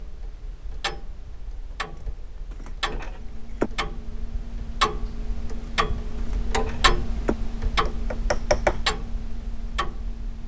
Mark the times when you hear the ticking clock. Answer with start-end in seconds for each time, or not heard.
0.0-10.4.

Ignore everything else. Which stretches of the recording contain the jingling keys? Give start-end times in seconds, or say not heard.
1.7-3.7, 5.6-7.3.